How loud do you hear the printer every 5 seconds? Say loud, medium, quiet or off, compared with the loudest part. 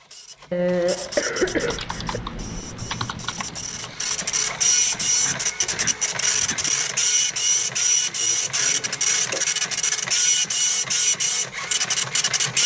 medium, loud, loud.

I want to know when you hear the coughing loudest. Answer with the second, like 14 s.
1 s.